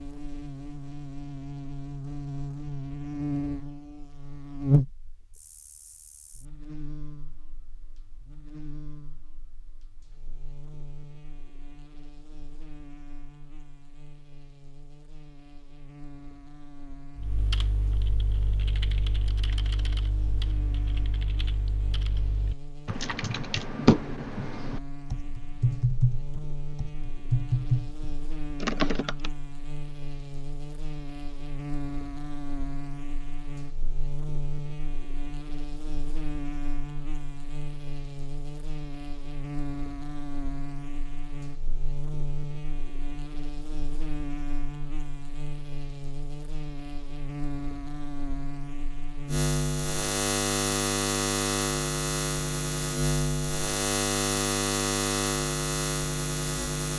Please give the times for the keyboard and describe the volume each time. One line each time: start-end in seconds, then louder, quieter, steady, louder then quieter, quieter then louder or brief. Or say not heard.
17.1-29.3 louder.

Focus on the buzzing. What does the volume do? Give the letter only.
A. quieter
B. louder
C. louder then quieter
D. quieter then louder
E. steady
D.